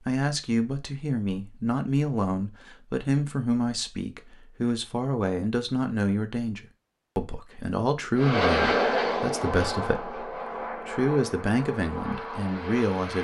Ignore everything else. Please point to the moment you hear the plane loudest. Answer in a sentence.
The volume of the plane peaks at 9 seconds.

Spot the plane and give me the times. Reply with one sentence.
You can hear the plane from 8.2 to 13.1 s.